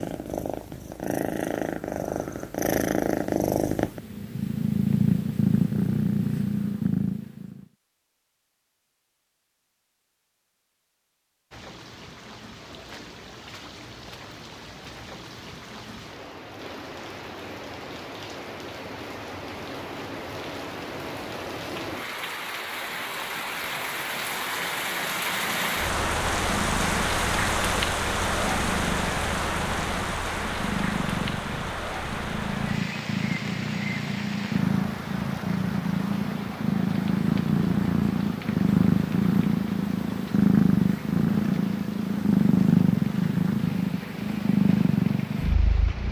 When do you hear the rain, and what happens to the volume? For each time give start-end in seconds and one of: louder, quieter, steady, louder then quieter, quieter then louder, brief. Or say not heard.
11.5-46.0 louder then quieter.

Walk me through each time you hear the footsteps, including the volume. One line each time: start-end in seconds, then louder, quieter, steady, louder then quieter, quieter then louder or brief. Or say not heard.
not heard.